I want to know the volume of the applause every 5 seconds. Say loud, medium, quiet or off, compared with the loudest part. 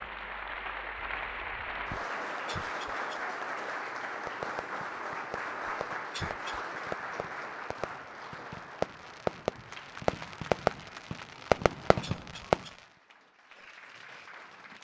loud, loud, quiet.